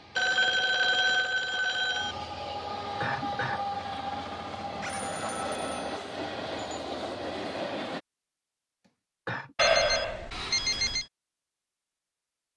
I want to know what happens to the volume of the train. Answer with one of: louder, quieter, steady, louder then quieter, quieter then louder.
louder.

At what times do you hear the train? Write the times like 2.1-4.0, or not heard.
0.0-8.0.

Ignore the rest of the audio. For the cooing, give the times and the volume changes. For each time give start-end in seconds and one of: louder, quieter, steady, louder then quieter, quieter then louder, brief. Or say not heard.
not heard.